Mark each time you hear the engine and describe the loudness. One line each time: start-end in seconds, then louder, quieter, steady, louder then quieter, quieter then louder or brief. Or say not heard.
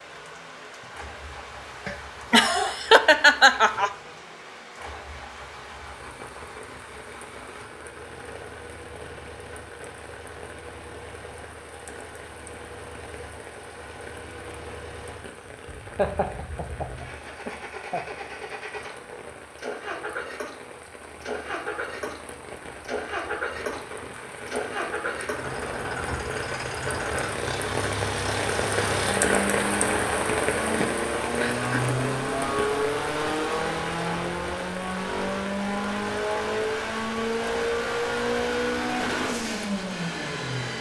0.0-40.7 louder.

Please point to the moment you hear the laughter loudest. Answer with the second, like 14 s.
3 s.